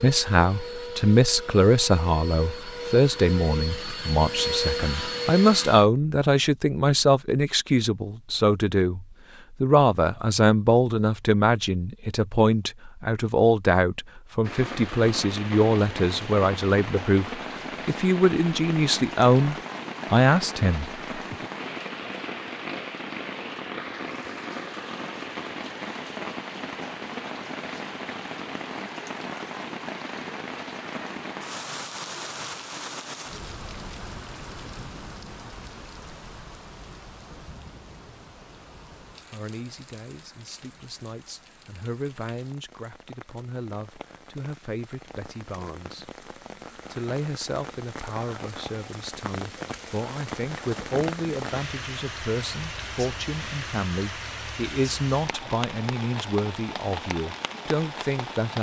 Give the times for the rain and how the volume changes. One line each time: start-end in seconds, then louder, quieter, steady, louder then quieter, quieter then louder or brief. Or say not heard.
14.4-58.5 quieter then louder.